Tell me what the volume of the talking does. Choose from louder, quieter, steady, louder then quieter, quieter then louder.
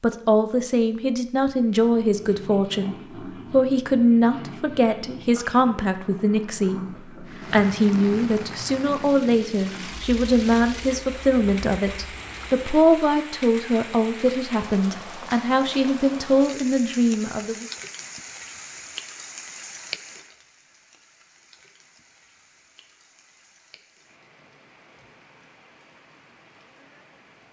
steady.